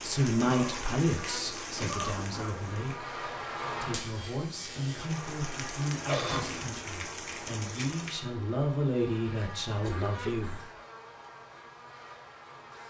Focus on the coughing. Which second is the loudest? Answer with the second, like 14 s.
6 s.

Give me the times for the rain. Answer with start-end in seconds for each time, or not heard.
0.0-8.2.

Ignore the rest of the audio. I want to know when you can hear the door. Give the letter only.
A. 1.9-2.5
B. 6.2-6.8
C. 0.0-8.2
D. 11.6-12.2
B.